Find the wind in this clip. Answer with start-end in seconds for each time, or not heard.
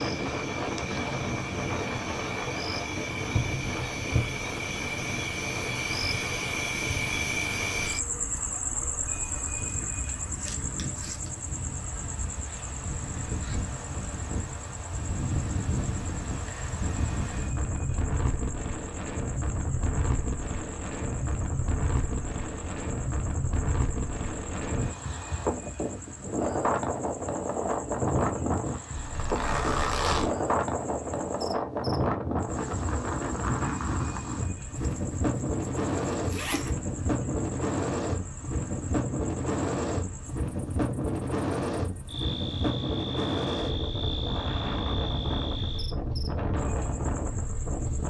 0.0-48.0.